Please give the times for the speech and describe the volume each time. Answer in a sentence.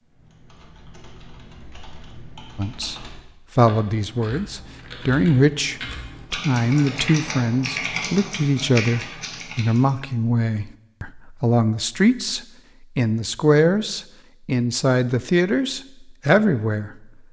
You can hear the speech from 2.5 to 16.9 s, at a steady volume.